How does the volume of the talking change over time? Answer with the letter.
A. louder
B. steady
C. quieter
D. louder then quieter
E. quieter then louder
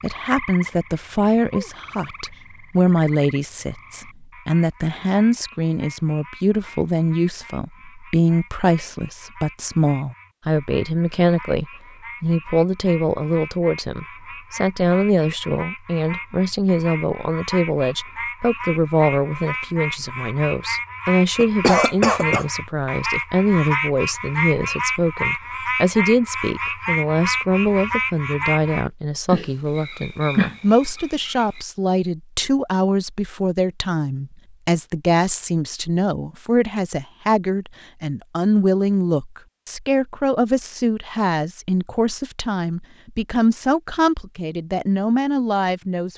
B.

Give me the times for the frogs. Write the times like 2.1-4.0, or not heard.
0.0-31.6.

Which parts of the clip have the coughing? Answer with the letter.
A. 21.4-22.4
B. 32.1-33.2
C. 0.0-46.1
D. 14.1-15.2
A.